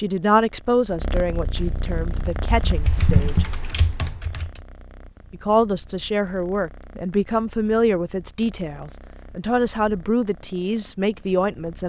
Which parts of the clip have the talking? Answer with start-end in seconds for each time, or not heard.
0.0-3.5, 5.3-11.8.